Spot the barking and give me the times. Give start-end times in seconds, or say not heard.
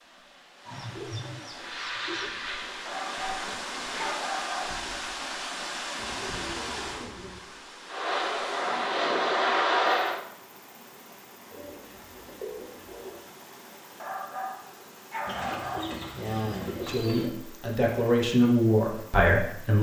2.9-4.8, 14.0-15.9.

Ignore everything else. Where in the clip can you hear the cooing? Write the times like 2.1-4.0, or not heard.
0.7-2.4, 6.0-7.5, 11.5-13.2, 15.2-17.3.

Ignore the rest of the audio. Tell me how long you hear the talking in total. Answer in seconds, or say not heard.
3 s.